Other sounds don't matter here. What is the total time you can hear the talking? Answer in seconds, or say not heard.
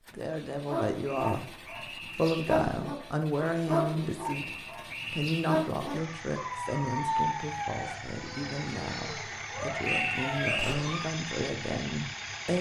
12 s.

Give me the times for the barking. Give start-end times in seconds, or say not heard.
0.7-11.2.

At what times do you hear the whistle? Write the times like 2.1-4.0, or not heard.
1.1-2.5, 4.2-5.5, 9.8-10.8.